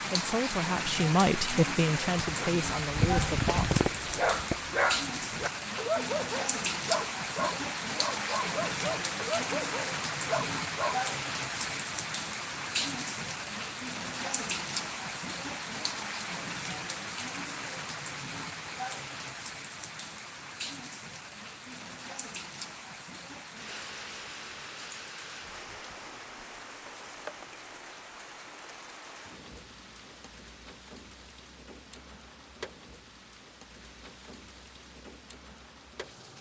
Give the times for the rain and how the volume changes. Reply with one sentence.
You can hear the rain from 0.0 to 36.3 s, getting quieter.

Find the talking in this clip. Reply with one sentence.
The talking can be heard from 0.1 to 3.7 s.